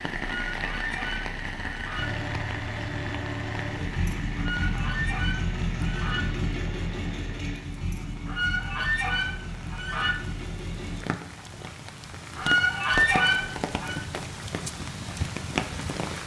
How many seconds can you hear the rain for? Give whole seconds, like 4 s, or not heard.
16 s.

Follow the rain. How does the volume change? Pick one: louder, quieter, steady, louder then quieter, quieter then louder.
quieter then louder.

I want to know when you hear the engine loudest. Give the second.
6 s.